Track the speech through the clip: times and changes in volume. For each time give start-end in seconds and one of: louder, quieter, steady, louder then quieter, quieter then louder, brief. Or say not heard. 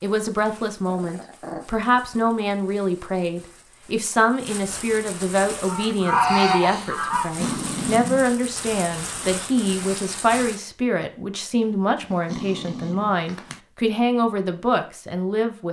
0.0-15.6 steady.